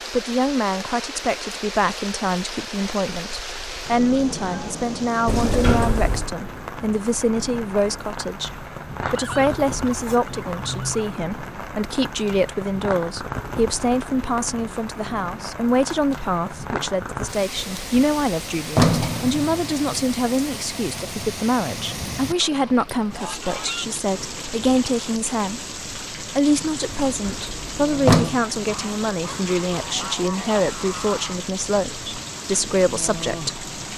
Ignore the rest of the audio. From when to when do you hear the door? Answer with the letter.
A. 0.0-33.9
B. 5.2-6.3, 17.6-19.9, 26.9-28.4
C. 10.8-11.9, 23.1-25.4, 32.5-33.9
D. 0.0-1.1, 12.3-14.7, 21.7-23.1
B.